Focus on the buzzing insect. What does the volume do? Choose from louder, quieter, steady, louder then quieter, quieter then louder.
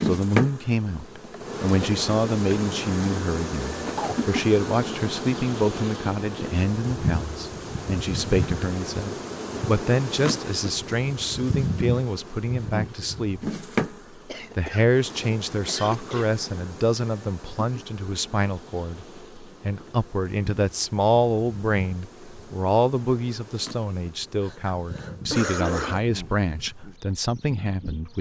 quieter.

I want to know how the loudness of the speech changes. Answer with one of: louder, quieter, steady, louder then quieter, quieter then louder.
steady.